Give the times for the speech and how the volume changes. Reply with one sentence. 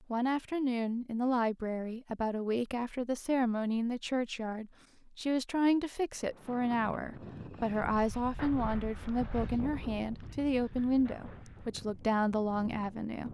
You can hear the speech from 0.1 to 13.3 s, at a steady volume.